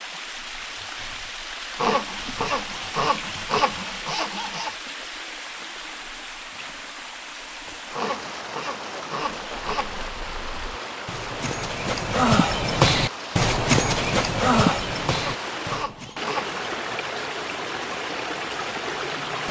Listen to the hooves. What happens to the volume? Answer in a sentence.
The volume of the hooves goes up, then down.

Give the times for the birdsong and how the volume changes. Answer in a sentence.
The birdsong can't be heard in this clip.